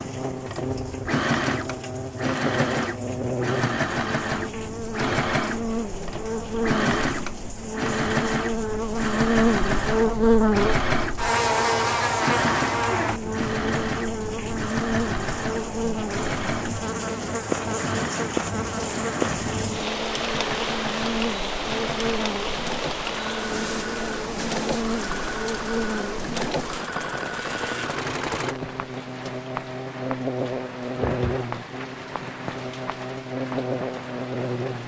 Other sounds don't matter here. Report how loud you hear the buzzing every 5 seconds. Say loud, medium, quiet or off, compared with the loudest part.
medium, loud, loud, medium, medium, medium, medium.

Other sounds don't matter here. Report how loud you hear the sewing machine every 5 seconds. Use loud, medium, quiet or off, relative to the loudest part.
loud, loud, loud, medium, medium, medium, off.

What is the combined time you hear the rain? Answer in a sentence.
The rain can be heard for 35 seconds in total.